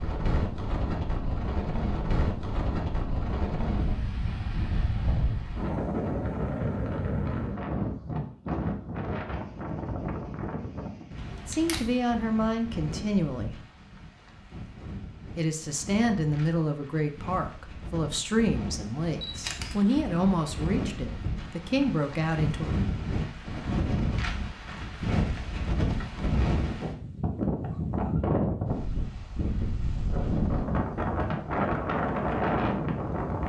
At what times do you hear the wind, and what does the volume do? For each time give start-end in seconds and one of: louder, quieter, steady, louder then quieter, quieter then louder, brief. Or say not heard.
0.0-33.4 quieter then louder.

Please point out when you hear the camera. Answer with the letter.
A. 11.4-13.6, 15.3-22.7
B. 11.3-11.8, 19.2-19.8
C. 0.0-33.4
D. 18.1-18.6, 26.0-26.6
B.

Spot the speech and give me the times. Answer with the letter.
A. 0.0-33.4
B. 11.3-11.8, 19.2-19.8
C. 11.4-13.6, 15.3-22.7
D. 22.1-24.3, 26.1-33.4
C.